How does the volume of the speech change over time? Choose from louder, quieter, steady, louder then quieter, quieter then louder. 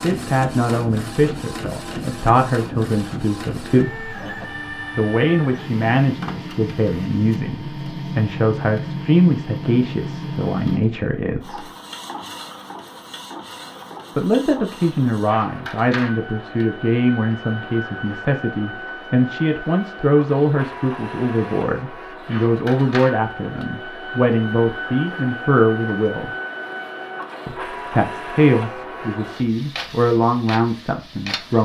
steady.